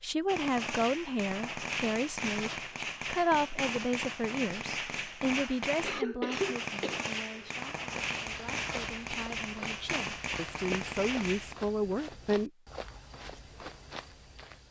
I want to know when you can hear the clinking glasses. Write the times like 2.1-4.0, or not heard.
not heard.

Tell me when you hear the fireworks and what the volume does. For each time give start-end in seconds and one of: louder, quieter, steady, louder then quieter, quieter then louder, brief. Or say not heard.
0.2-11.6 steady.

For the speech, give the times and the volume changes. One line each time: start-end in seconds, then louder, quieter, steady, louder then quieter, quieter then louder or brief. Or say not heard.
0.0-12.5 quieter then louder.